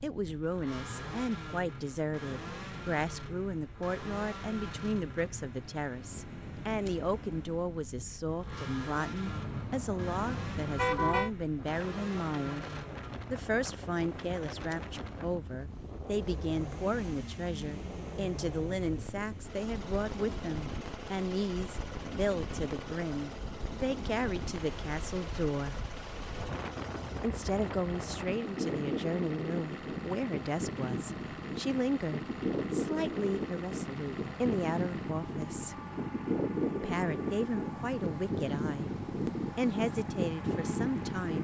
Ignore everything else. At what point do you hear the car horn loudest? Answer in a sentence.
The loudest moment of the car horn is at 11 seconds.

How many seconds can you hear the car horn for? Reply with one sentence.
You can hear the car horn for 2 seconds altogether.